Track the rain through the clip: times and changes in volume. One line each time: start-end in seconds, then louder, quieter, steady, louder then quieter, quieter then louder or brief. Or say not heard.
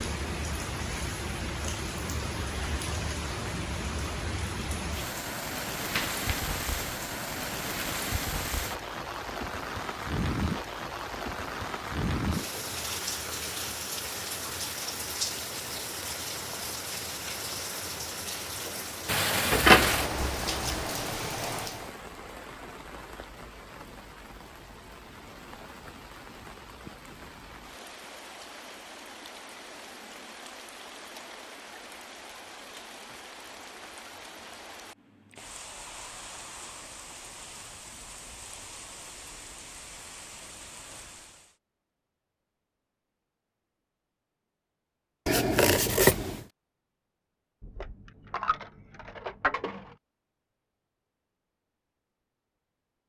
0.0-41.5 quieter.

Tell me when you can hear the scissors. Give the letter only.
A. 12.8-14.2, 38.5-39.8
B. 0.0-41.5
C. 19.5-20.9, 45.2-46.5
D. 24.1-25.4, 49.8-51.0
C.